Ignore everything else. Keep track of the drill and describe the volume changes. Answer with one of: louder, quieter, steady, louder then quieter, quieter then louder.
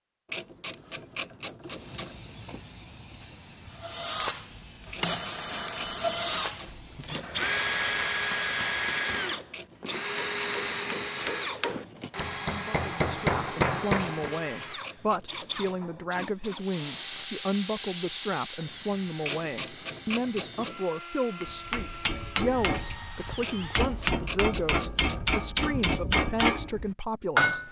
quieter.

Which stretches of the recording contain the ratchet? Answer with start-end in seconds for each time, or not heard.
0.3-2.6, 4.9-7.5, 9.5-12.1, 13.9-16.3, 19.2-20.8, 23.4-26.0.